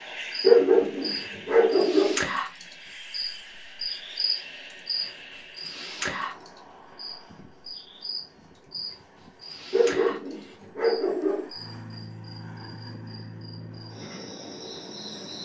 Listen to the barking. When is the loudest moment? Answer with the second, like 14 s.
1 s.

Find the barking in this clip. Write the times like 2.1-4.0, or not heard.
0.4-2.2, 9.7-11.5.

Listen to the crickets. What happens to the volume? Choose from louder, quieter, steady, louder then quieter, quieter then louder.
quieter.